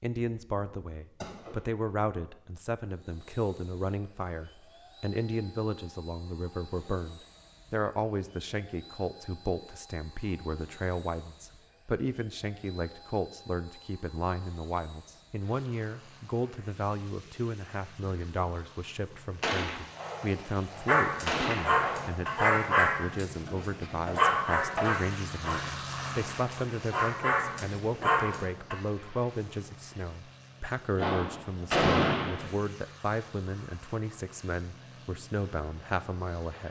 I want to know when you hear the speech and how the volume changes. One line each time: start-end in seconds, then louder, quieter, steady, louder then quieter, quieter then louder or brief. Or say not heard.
0.0-36.6 steady.